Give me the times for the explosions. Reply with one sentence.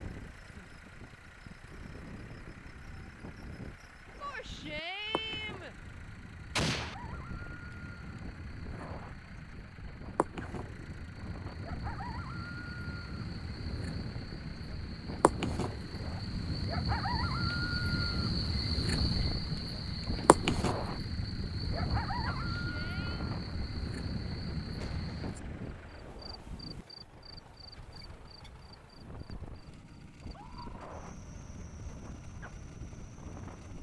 The explosions can be heard from 6.5 to 7.0 s and from 24.8 to 26.4 s.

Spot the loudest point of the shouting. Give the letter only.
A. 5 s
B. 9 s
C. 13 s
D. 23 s
A.